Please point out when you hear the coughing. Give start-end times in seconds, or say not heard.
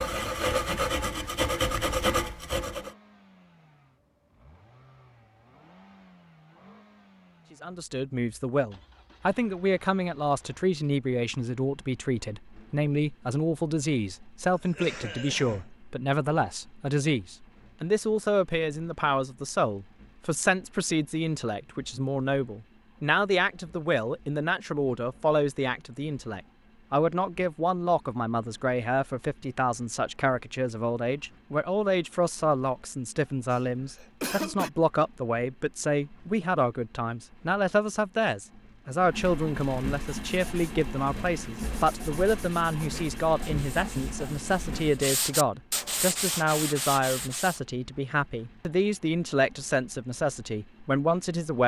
14.5-15.7, 33.5-34.7.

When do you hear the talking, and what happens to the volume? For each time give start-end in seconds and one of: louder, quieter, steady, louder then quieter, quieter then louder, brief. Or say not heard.
7.5-51.6 steady.